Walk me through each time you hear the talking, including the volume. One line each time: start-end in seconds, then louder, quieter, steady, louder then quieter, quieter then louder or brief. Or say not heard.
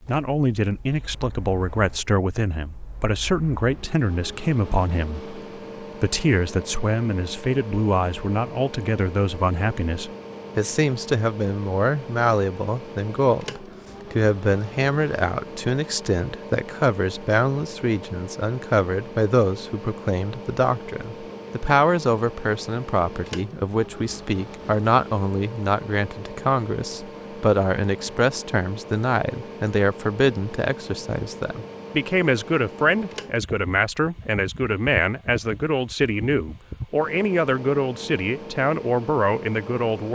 0.1-40.1 steady.